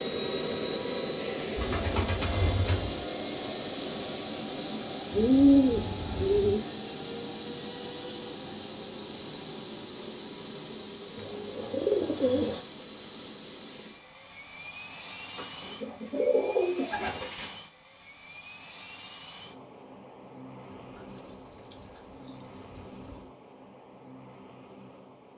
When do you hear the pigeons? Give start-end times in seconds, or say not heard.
1.6-3.0, 5.1-6.6, 11.2-12.6, 15.3-17.5, 20.8-23.3.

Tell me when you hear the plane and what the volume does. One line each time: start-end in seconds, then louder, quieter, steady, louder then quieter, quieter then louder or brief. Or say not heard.
0.0-25.3 quieter.